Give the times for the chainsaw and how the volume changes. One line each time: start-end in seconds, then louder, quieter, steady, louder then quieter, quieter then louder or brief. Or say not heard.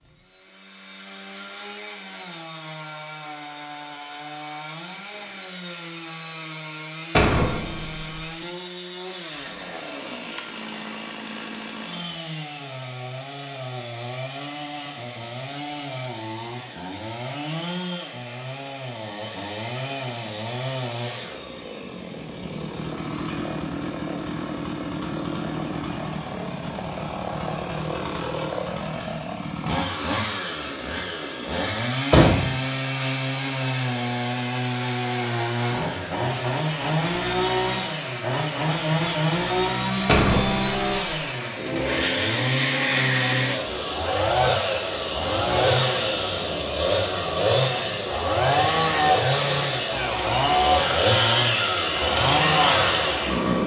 0.0-53.6 louder.